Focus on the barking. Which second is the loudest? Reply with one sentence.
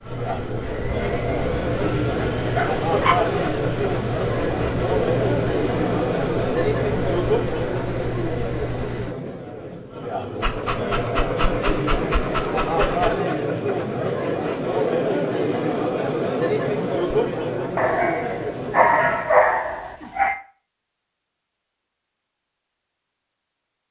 The loudest moment of the barking is at 19 seconds.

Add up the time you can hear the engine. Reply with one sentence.
You can hear the engine for 9 seconds altogether.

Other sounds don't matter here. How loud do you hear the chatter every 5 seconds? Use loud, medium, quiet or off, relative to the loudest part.
loud, loud, loud, loud, off.